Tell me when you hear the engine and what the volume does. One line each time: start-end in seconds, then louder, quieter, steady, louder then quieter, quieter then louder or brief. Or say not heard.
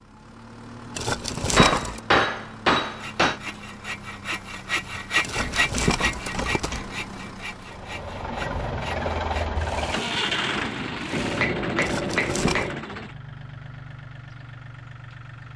0.0-15.5 louder then quieter.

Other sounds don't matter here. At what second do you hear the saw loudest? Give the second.
5 s.